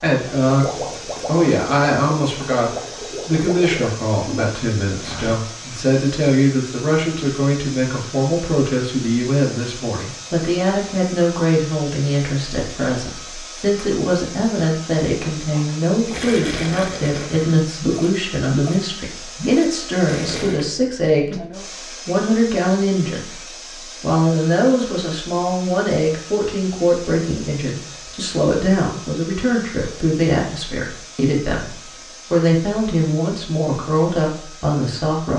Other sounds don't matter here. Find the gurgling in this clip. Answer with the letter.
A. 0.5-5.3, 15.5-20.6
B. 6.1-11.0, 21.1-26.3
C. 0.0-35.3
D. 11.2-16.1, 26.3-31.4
A.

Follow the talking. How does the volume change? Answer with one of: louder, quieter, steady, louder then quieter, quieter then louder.
steady.